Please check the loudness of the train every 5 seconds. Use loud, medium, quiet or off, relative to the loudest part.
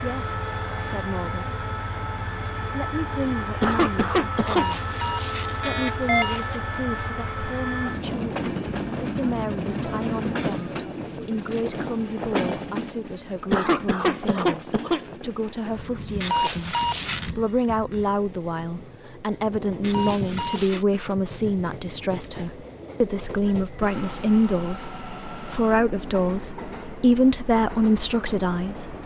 loud, loud, loud, medium, medium, medium.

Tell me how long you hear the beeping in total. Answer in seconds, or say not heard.
4 s.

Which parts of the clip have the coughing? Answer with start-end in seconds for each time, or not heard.
3.5-4.7, 13.3-15.2, 20.4-21.0.